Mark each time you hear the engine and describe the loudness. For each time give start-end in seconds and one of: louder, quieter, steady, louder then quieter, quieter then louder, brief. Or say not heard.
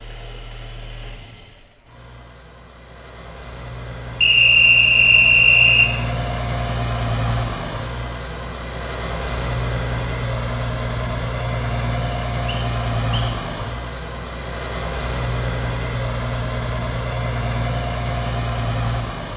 0.0-19.3 louder.